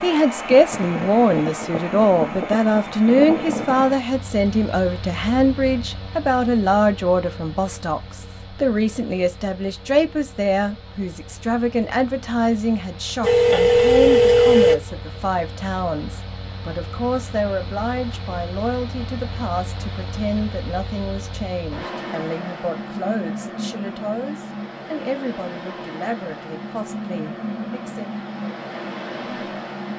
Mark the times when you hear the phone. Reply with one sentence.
You can hear the phone from 13.2 to 14.8 s.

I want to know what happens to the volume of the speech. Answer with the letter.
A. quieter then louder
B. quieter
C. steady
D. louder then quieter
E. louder
B.